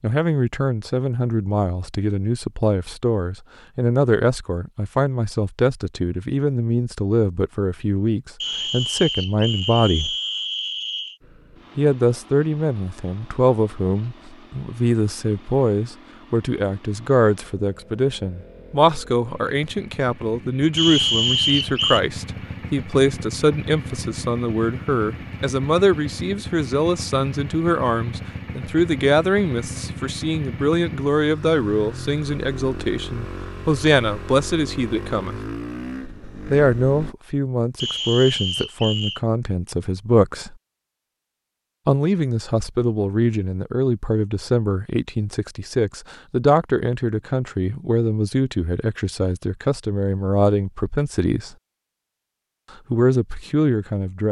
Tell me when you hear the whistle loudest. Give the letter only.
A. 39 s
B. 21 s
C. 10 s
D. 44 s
B.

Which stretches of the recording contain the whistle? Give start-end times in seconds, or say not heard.
8.4-11.2, 20.8-22.0, 37.8-39.2.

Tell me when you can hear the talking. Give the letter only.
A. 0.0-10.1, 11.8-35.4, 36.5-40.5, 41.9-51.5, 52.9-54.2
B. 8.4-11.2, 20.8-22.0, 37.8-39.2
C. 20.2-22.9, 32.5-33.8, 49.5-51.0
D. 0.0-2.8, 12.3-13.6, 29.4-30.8
A.